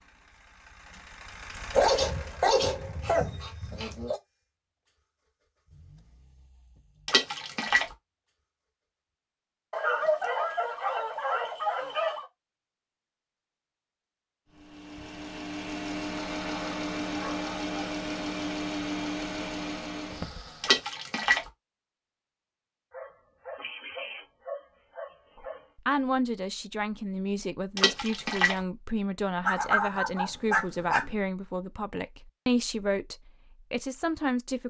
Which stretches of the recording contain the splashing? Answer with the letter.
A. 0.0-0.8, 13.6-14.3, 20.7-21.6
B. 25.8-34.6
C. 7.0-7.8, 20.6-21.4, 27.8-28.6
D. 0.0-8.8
C.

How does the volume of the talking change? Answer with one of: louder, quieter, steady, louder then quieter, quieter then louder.
steady.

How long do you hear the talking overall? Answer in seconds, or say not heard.
9 s.